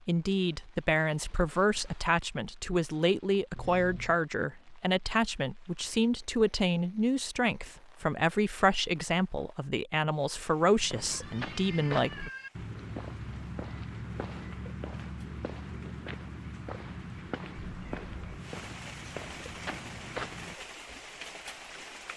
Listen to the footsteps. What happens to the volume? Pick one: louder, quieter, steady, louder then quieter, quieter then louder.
steady.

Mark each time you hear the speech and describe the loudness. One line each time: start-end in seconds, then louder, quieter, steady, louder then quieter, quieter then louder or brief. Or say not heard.
0.1-12.3 steady.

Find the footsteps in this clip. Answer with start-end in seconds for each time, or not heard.
10.6-21.0.